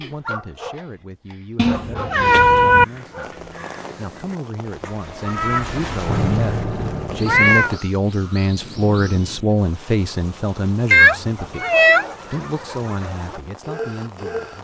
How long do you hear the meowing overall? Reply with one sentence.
The meowing can be heard for 4 seconds in total.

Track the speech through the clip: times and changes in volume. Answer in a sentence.
You can hear the speech from 0.0 to 11.7 s, getting louder; and briefly from 12.2 to 14.5 s.